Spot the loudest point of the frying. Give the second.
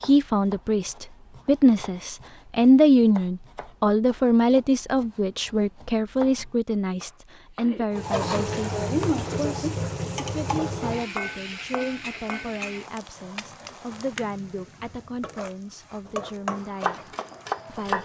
9 s.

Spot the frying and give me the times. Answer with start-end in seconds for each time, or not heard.
7.9-17.9.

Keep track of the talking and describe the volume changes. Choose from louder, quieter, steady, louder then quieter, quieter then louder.
quieter.